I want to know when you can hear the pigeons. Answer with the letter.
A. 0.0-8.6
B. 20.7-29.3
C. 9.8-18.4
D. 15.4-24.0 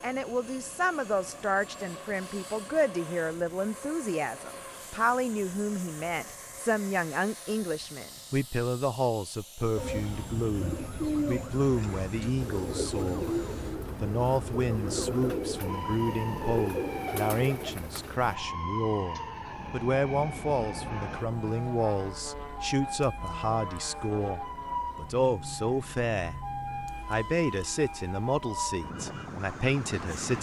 C.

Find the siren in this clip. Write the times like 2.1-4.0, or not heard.
9.8-30.3.